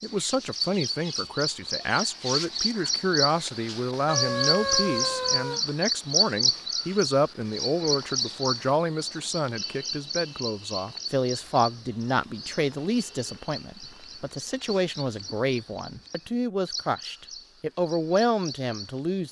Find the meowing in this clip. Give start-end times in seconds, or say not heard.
4.0-5.6.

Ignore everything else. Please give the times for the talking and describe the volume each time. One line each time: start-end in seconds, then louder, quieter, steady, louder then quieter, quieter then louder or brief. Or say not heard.
0.0-19.2 steady.